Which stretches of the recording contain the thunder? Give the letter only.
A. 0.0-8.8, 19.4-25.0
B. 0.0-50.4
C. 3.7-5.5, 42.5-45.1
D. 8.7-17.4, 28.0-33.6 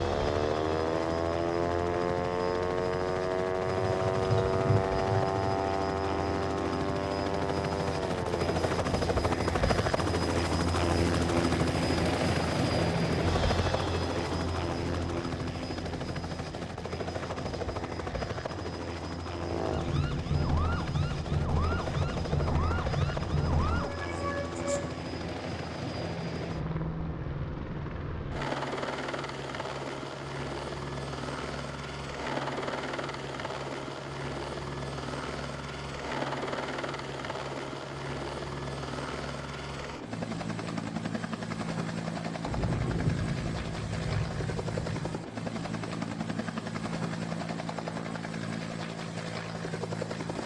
C.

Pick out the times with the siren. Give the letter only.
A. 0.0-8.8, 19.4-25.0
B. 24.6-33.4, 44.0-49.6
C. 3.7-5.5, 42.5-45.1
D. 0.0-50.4
A.